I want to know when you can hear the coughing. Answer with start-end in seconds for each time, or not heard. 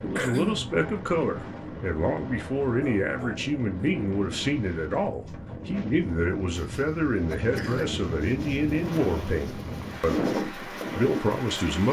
0.1-0.8, 6.5-8.0.